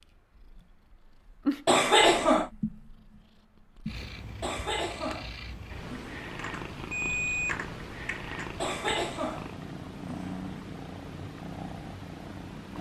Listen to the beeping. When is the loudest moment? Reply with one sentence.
The loudest moment of the beeping is at 7 seconds.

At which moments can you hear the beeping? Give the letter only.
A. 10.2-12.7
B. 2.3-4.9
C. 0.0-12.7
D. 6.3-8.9
D.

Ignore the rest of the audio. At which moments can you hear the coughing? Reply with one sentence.
The coughing can be heard from 1.6 to 2.5 s, from 4.4 to 6.2 s and from 8.6 to 10.3 s.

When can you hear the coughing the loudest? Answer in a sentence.
The loudest moment of the coughing is at 2 seconds.